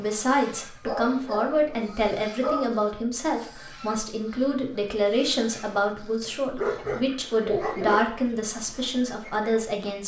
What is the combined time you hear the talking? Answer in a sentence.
You can hear the talking for 10 seconds altogether.